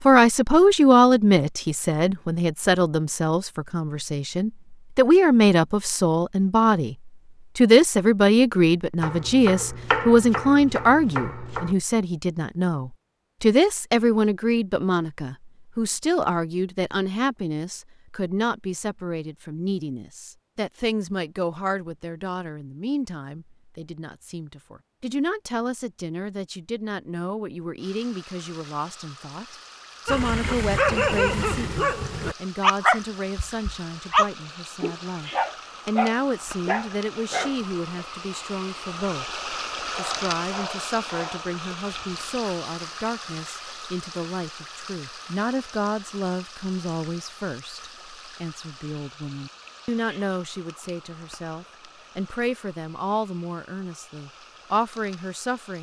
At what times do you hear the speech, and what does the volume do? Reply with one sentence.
You can hear the speech from 0.0 to 55.7 s, getting quieter.